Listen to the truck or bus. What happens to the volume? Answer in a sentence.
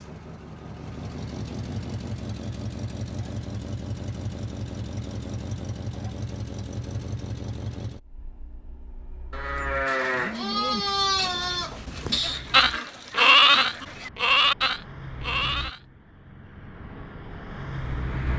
The volume of the truck or bus goes down, then up.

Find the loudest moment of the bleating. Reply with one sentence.
The loudest moment of the bleating is at 13 seconds.